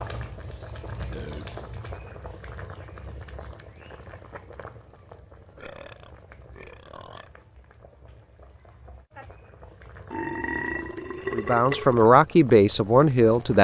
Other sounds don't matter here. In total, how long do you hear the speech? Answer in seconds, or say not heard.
2 s.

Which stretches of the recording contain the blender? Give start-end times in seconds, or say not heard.
not heard.